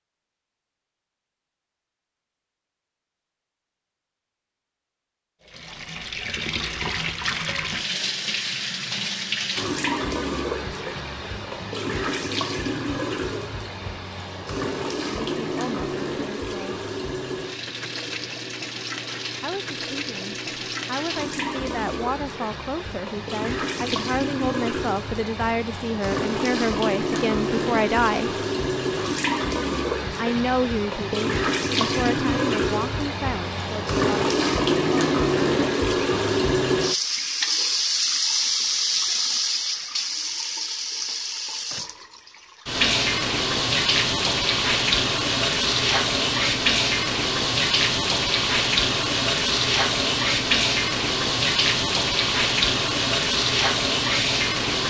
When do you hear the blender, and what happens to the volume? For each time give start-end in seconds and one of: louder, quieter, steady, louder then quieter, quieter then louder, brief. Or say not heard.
not heard.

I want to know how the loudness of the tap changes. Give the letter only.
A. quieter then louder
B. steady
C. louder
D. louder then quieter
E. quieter
C.